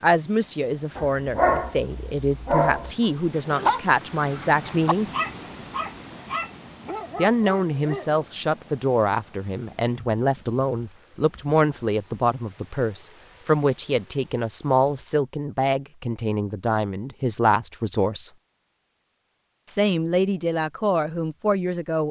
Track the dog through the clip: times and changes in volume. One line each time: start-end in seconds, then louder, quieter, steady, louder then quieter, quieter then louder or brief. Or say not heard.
0.9-8.2 quieter.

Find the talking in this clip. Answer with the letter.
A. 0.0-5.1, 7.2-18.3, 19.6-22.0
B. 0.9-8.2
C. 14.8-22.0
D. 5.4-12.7
A.